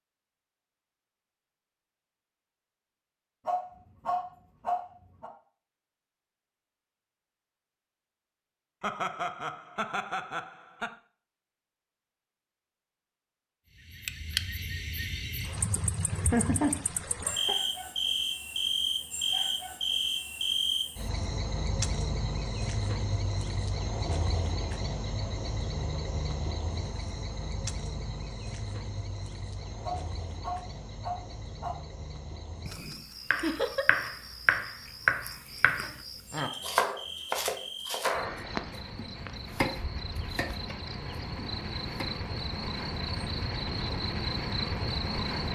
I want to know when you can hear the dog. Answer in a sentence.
The dog can be heard from 3.5 to 5.3 s and from 29.8 to 31.8 s.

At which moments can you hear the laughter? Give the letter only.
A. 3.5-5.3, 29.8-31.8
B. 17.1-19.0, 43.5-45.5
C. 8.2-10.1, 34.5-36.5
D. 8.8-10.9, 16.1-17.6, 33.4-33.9
D.